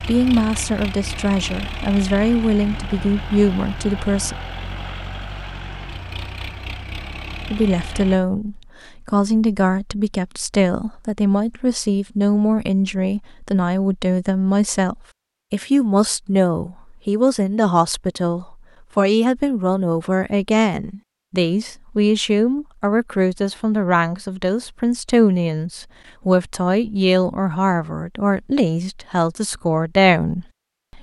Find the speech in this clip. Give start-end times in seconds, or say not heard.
0.0-4.3, 7.5-30.9.